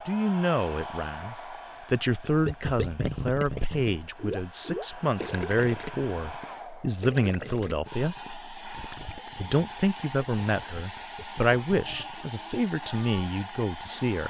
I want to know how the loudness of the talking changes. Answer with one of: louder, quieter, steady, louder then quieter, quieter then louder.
steady.